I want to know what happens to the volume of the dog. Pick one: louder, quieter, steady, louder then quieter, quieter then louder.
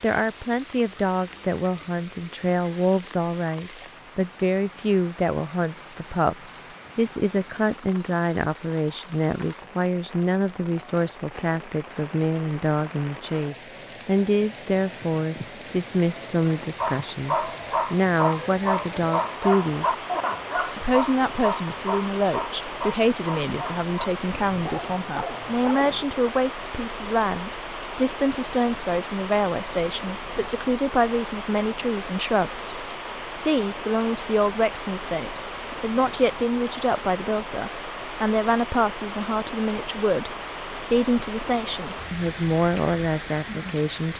quieter.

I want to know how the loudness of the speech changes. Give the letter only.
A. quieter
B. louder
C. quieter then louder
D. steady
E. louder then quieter
D.